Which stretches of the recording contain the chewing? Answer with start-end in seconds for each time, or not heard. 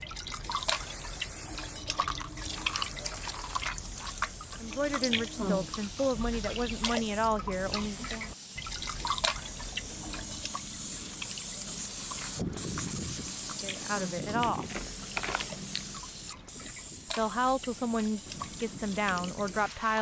1.9-4.2, 14.4-16.1.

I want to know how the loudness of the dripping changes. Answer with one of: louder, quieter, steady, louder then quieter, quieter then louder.
quieter.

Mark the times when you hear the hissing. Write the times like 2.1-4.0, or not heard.
0.0-19.9.